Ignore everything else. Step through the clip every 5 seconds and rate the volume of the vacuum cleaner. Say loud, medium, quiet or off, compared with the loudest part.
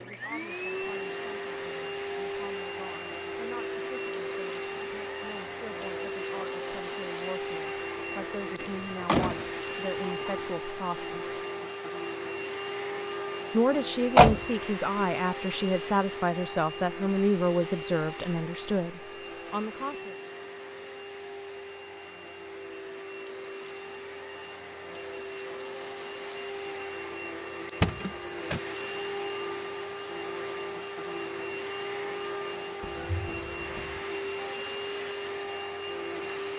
loud, loud, loud, loud, medium, loud, loud, loud.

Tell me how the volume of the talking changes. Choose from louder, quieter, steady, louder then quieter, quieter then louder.
louder.